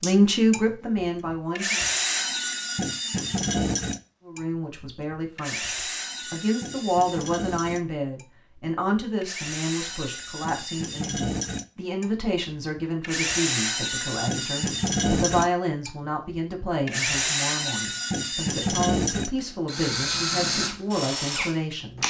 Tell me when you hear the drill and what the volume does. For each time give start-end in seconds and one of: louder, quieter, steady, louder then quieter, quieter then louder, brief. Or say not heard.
0.0-22.0 quieter then louder.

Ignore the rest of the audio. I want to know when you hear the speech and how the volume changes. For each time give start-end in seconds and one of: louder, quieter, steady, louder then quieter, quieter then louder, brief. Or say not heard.
0.0-1.8 brief
4.2-22.0 steady.